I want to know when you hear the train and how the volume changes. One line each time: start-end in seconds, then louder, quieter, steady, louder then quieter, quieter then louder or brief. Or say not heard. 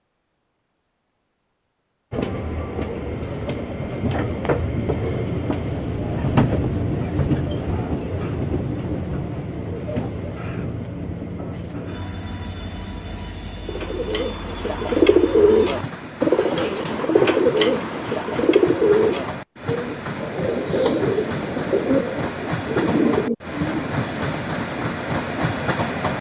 2.1-26.1 quieter then louder.